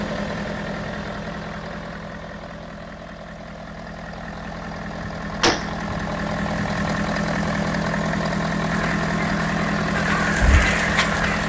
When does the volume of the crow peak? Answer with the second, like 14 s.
11 s.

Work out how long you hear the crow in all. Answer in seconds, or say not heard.
3 s.